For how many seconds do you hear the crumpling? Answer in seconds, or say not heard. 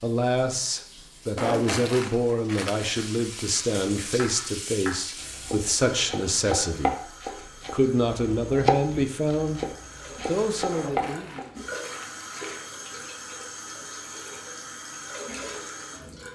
4 s.